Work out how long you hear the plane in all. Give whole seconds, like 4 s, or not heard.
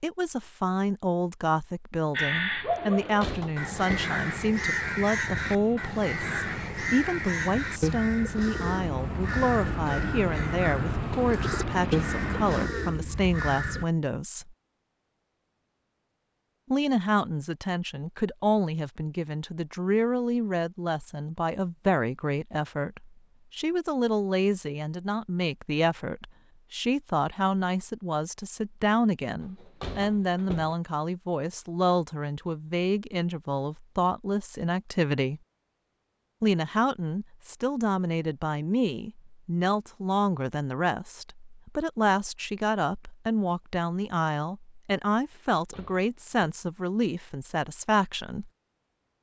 7 s.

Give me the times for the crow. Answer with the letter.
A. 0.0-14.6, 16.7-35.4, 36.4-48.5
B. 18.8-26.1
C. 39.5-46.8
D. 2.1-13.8
D.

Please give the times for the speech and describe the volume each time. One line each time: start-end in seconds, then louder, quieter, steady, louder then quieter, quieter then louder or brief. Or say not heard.
0.0-14.6 steady
16.7-35.4 steady
36.4-48.5 steady.